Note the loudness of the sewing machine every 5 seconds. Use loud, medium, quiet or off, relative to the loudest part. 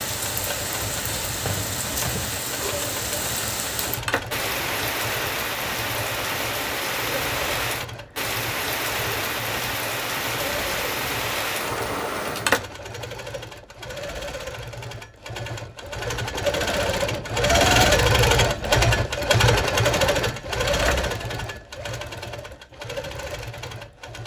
quiet, quiet, quiet, loud, medium.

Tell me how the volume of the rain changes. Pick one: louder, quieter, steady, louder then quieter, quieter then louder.
steady.